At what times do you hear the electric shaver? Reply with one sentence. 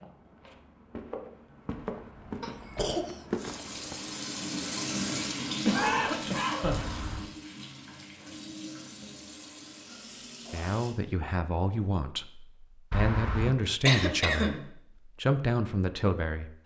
The electric shaver can't be heard in this clip.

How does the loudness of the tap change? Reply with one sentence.
The loudness of the tap goes down.